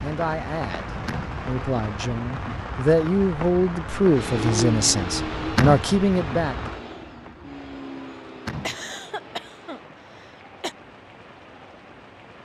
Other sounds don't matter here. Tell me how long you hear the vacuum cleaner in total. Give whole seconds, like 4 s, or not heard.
6 s.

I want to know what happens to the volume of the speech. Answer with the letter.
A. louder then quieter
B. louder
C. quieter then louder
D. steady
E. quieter
B.